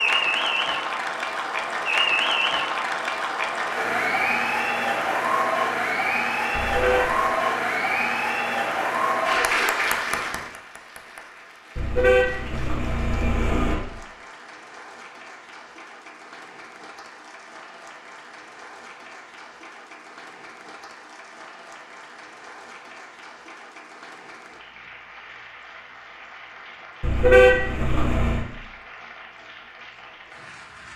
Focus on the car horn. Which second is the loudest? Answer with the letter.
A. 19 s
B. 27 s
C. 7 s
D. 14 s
B.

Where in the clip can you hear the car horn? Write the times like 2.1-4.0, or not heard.
6.5-7.2, 11.8-13.8, 27.0-28.4.